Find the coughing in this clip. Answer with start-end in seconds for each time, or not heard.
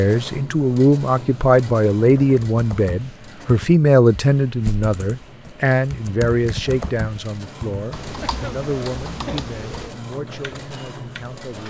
8.2-9.4.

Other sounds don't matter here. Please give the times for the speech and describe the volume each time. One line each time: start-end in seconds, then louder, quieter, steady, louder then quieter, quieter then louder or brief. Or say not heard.
0.0-11.6 quieter.